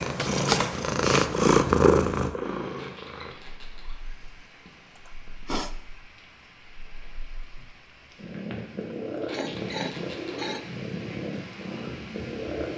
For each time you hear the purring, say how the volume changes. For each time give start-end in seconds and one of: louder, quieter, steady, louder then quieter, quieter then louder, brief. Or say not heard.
0.0-12.7 quieter then louder.